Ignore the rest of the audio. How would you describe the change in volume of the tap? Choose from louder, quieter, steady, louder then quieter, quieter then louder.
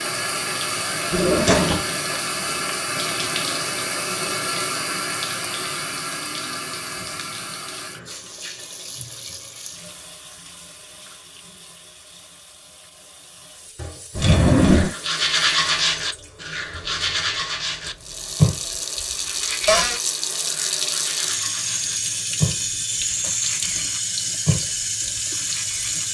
quieter then louder.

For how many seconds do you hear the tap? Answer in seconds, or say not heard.
26 s.